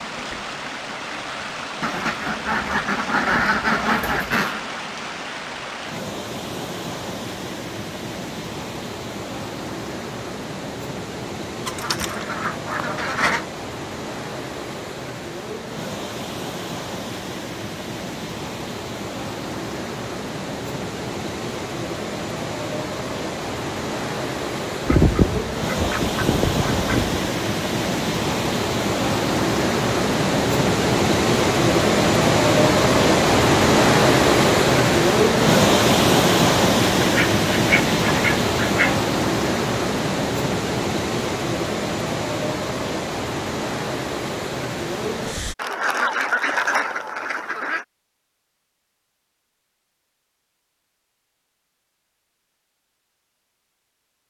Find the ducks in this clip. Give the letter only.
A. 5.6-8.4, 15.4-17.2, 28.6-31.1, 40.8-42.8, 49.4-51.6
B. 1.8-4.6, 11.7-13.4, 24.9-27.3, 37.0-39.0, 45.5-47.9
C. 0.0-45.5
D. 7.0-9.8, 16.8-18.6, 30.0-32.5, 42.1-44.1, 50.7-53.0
B.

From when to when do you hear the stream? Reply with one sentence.
You can hear the stream from 0.0 to 45.5 s.